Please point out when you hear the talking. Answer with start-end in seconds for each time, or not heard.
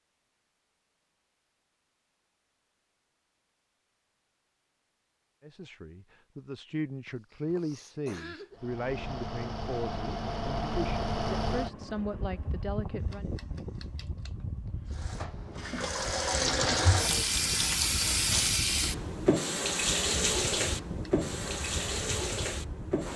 5.4-13.3.